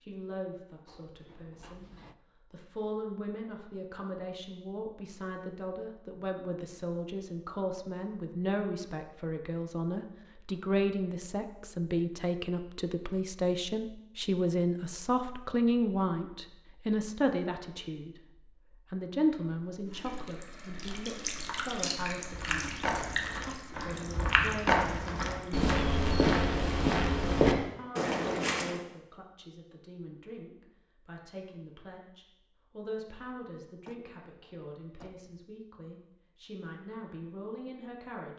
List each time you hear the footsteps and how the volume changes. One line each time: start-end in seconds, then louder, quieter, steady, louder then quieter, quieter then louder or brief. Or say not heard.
22.2-28.8 louder.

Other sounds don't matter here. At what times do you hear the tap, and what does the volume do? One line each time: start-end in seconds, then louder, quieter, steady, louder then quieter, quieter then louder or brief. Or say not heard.
19.6-25.6 louder then quieter.